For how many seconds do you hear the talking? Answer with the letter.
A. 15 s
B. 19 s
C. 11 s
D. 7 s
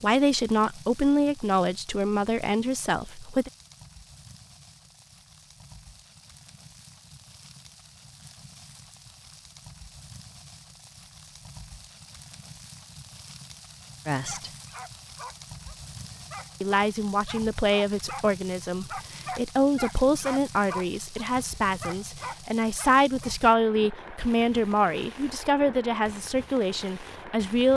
A.